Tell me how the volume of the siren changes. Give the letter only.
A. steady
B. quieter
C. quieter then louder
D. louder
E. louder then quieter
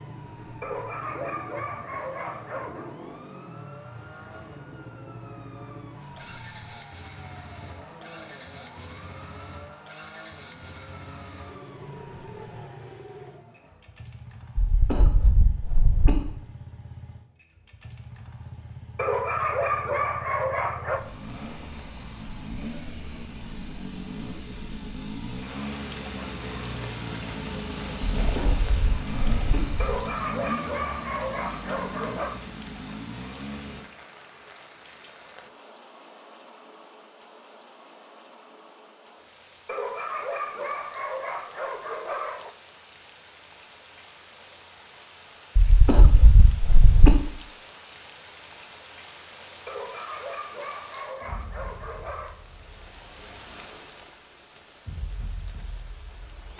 A.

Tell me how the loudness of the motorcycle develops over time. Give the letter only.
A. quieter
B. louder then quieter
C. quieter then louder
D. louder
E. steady
D.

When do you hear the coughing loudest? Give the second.
47 s.